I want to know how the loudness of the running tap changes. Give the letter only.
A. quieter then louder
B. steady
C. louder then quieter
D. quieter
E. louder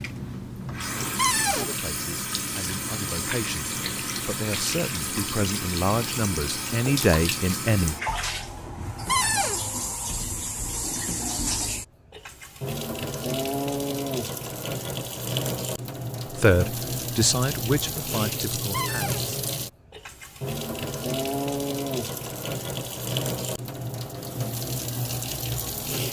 B.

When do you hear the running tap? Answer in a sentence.
The running tap can be heard from 0.0 to 26.0 s.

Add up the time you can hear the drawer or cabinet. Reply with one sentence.
You can hear the drawer or cabinet for 2 seconds altogether.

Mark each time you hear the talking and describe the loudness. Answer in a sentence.
You can hear the talking from 1.6 to 8.0 s, getting louder; and briefly from 16.2 to 19.2 s.